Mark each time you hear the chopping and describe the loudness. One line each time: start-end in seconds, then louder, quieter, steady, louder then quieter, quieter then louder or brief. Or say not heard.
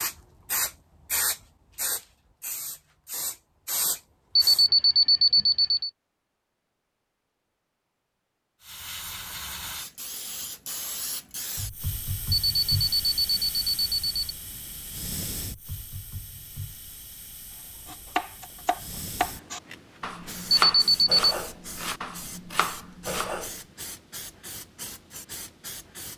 17.9-23.5 louder then quieter.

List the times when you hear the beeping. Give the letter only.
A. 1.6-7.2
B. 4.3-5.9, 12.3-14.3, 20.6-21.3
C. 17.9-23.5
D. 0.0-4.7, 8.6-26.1
B.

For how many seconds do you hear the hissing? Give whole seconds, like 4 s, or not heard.
22 s.